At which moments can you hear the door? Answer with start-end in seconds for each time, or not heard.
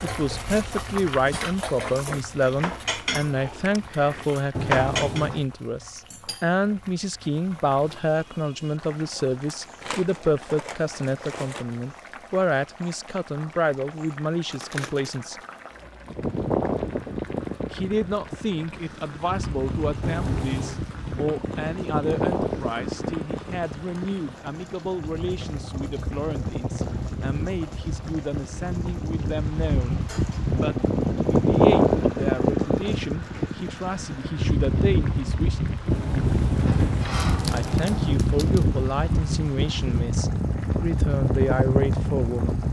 4.5-5.5, 20.0-20.9, 35.9-38.2.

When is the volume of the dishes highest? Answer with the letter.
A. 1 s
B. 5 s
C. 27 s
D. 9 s
B.